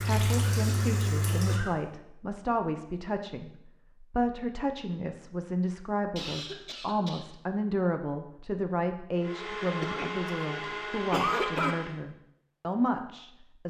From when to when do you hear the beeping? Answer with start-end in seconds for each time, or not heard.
not heard.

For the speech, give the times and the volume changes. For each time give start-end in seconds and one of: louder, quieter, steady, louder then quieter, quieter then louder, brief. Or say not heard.
0.1-13.6 steady.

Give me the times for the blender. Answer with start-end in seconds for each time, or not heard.
9.2-11.9.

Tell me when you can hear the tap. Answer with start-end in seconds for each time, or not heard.
0.0-1.6.